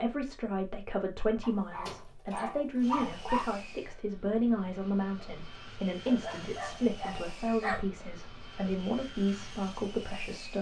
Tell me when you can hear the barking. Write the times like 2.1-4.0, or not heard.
1.4-3.5, 6.0-7.8.